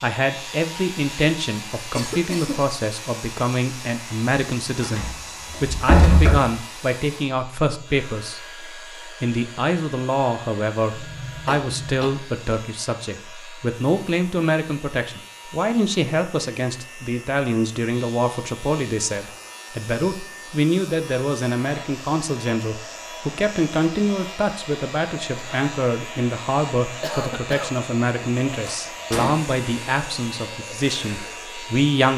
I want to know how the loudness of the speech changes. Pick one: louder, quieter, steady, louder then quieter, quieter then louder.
steady.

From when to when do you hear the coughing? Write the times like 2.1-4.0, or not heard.
1.9-2.6, 10.9-12.2, 27.0-27.8.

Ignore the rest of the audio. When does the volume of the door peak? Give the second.
6 s.